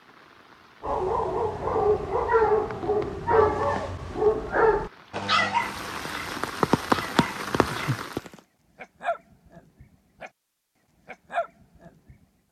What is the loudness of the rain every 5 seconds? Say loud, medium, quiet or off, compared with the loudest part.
quiet, loud, off.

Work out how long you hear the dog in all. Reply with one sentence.
The dog can be heard for 10 seconds in total.